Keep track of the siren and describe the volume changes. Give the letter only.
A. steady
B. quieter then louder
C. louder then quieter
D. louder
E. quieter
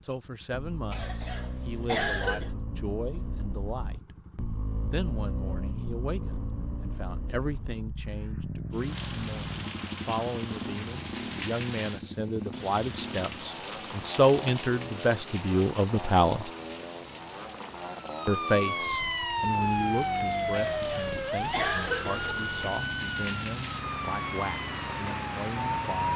E.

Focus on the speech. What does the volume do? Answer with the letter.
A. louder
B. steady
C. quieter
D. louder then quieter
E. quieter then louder
D.